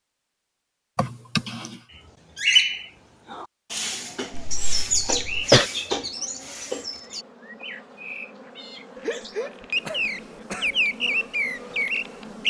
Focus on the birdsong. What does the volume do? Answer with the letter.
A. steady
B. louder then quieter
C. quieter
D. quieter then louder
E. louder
D.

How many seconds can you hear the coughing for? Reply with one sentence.
The coughing can be heard for 4 seconds in total.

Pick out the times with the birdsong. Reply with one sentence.
You can hear the birdsong from 1.9 to 12.4 s.